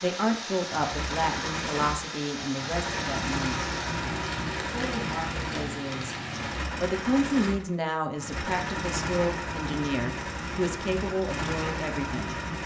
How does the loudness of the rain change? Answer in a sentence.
The loudness of the rain stays about the same.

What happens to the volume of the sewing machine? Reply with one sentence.
The loudness of the sewing machine stays about the same.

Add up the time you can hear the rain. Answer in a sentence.
You can hear the rain for 7 seconds altogether.